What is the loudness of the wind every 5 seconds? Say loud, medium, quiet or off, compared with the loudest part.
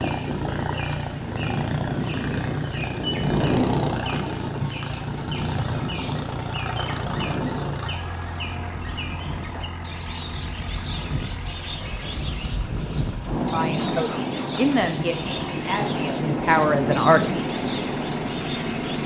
loud, medium, loud, loud.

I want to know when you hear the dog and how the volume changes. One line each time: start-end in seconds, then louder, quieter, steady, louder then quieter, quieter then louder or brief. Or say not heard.
not heard.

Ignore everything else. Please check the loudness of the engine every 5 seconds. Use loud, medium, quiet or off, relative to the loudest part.
loud, loud, medium, loud.